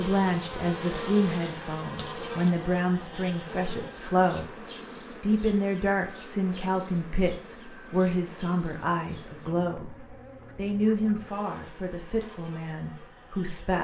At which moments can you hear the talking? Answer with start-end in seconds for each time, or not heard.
0.0-4.5, 5.2-9.9, 10.6-13.7.